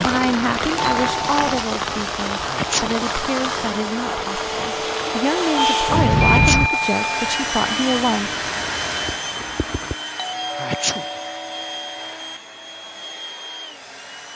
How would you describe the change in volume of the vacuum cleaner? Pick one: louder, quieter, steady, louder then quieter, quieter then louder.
louder then quieter.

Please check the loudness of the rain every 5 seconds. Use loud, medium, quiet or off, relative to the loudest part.
loud, medium, off.